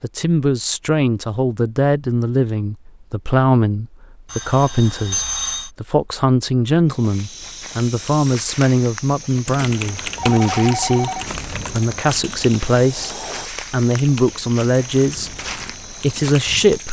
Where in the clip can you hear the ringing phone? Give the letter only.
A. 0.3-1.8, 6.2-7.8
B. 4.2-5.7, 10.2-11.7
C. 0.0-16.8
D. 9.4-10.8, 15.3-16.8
B.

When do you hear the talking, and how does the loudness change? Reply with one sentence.
The talking can be heard from 0.0 to 16.8 s, at a steady volume.